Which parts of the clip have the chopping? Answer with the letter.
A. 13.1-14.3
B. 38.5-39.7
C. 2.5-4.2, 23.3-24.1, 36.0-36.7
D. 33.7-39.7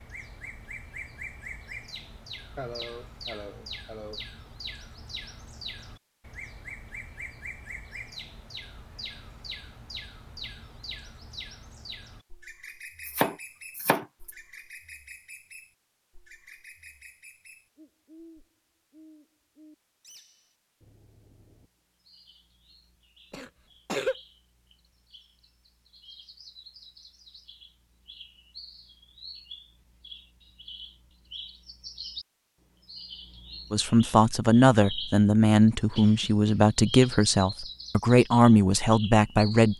A.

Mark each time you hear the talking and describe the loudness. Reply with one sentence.
You can hear the talking from 33.7 to 39.7 s, at a steady volume.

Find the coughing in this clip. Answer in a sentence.
The coughing can be heard from 2.5 to 4.2 s, from 23.3 to 24.1 s and from 36.0 to 36.7 s.